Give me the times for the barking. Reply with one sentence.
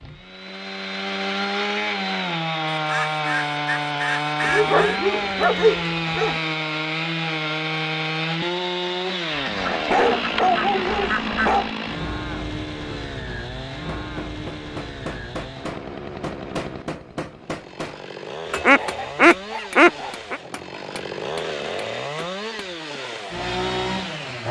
You can hear the barking from 4.4 to 6.4 s, from 9.8 to 11.7 s and from 18.6 to 20.1 s.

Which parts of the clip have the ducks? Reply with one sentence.
You can hear the ducks from 2.7 to 5.0 s, from 9.6 to 11.5 s and from 18.6 to 20.4 s.